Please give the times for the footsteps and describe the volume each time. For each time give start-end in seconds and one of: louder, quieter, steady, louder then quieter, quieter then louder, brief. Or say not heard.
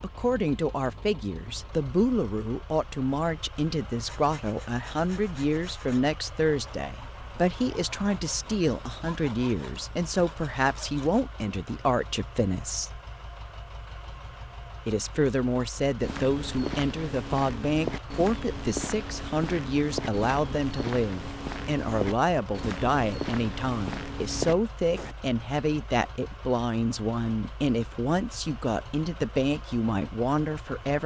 16.0-25.1 steady.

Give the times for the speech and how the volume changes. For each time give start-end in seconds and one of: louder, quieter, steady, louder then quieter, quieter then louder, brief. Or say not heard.
0.0-12.9 steady
14.8-31.0 steady.